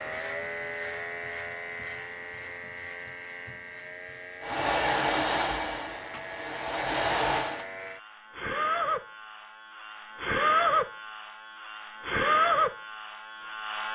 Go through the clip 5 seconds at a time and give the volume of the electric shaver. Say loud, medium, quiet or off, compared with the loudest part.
medium, medium, loud.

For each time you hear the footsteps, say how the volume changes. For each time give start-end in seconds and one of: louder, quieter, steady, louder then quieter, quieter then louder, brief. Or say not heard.
not heard.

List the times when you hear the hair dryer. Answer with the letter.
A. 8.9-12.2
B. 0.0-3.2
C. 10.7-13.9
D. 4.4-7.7
D.